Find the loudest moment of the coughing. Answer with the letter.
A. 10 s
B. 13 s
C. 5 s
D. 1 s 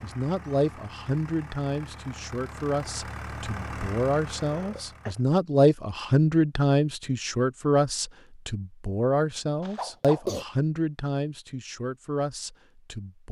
A.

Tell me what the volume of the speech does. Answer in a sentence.
The loudness of the speech goes up, then down.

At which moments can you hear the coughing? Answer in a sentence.
You can hear the coughing from 4.3 to 5.2 s and from 9.6 to 10.4 s.